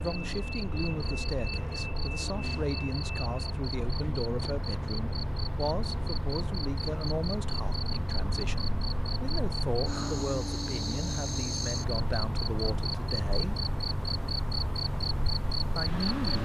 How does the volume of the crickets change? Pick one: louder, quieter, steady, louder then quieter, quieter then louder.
louder.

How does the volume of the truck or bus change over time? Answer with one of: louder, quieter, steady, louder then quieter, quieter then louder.
steady.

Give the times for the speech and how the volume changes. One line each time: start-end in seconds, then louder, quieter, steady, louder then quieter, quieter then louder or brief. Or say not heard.
0.0-13.6 steady
15.7-16.4 brief.